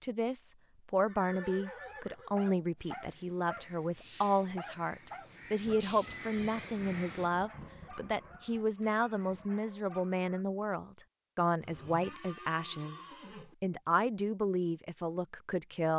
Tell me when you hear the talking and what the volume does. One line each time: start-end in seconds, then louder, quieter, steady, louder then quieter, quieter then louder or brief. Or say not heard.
0.0-15.9 steady.